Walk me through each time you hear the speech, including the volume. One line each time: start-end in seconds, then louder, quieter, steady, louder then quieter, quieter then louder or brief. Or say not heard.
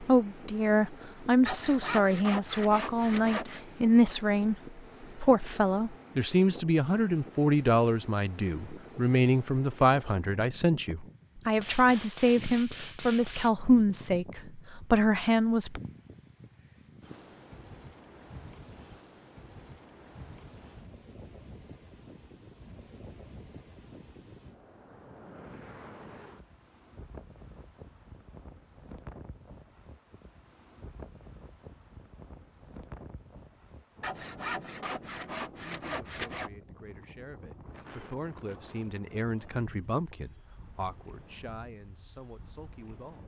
0.0-15.8 steady
35.6-43.2 louder then quieter.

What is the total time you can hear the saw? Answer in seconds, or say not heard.
5 s.